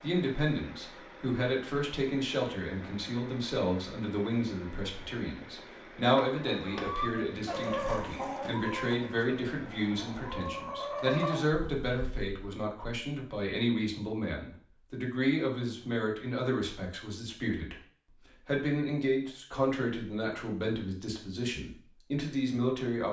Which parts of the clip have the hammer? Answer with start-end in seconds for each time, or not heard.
not heard.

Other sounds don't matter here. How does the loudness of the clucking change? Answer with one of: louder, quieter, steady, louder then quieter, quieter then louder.
quieter then louder.